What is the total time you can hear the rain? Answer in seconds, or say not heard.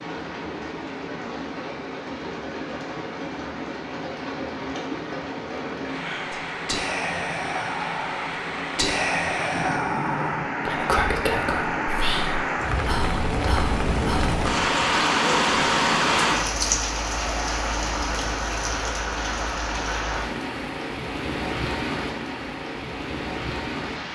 24 s.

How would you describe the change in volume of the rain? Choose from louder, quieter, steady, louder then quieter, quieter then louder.
louder then quieter.